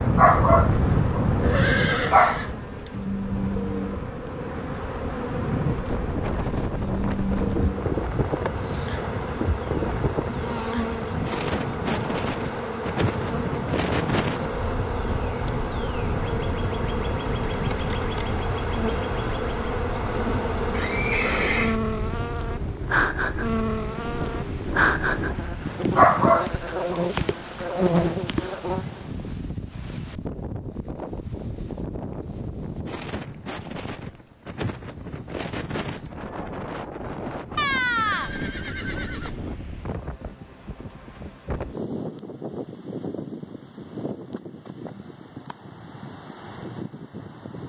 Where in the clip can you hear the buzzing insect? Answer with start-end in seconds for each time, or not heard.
0.0-29.0.